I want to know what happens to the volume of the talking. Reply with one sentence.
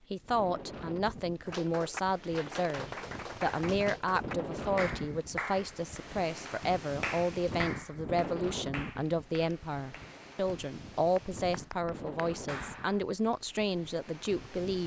The loudness of the talking stays about the same.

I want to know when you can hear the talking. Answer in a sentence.
The talking can be heard from 0.1 to 14.8 s.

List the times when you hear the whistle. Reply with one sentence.
The whistle can't be heard in this clip.